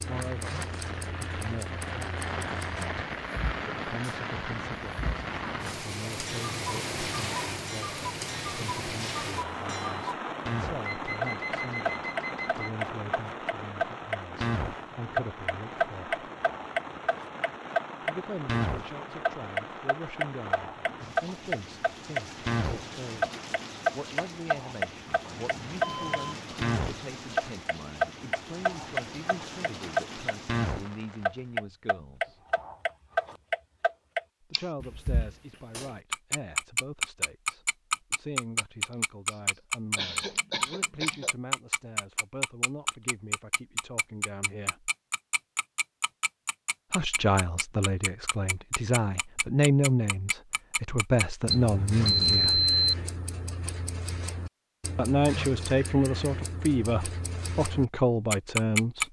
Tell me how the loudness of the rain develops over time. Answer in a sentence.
The loudness of the rain goes down.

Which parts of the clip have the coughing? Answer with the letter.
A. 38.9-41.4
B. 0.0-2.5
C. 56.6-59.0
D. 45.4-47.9
A.